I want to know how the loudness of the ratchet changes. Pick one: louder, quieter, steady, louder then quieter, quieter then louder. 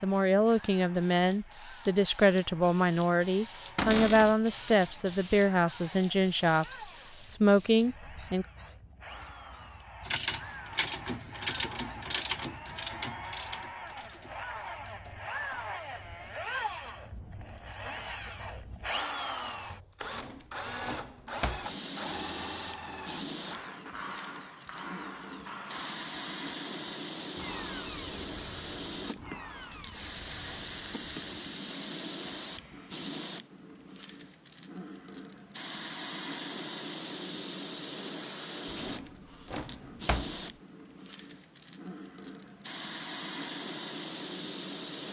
quieter.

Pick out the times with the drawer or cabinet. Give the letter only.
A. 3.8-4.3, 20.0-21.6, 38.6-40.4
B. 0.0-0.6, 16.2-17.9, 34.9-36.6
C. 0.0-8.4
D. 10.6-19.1
A.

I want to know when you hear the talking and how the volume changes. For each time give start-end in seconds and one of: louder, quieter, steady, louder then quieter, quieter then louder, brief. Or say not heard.
0.0-8.4 steady.